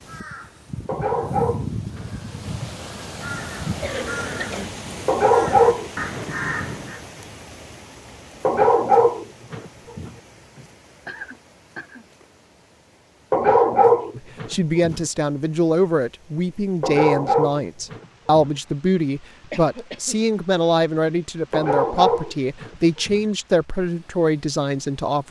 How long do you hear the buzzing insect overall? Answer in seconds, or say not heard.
not heard.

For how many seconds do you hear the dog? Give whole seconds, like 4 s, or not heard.
10 s.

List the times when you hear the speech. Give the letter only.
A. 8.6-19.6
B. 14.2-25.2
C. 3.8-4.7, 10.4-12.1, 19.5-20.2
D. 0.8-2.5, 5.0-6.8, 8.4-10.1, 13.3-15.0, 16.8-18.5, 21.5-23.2
B.